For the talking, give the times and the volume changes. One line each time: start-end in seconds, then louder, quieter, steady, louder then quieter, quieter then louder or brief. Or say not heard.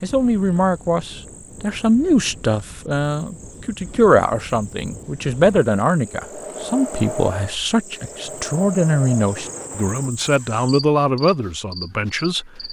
0.0-12.6 steady.